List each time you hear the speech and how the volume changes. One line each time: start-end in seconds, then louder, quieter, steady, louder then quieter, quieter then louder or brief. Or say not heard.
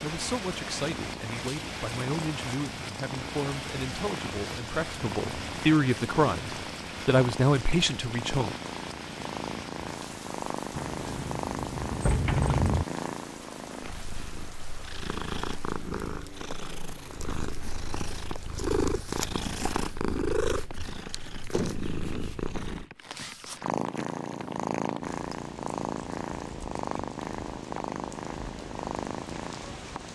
0.0-8.6 louder.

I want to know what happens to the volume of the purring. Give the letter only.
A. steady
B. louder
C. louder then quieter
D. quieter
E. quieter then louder
B.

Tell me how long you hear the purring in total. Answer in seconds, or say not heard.
30 s.